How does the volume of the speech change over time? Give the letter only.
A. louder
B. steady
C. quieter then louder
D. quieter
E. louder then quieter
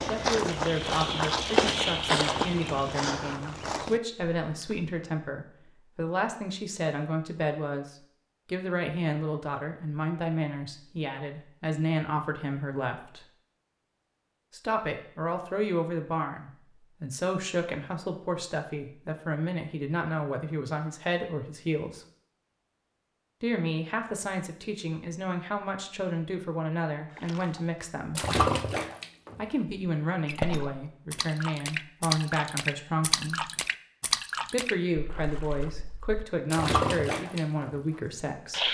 B.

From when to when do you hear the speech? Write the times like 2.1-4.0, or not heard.
0.0-13.2, 14.5-22.1, 23.4-28.2, 29.4-33.5, 34.5-38.6.